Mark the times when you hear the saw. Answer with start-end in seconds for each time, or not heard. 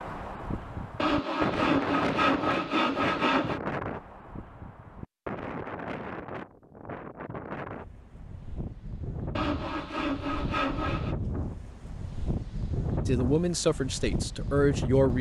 0.9-3.6, 9.3-11.2.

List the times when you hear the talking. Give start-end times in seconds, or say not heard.
13.1-15.1.